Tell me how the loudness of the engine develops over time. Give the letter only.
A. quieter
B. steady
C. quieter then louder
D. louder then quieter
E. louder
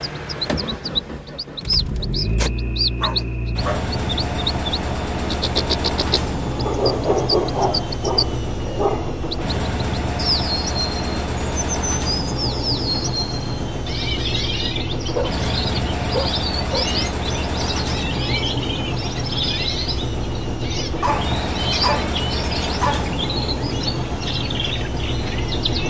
B.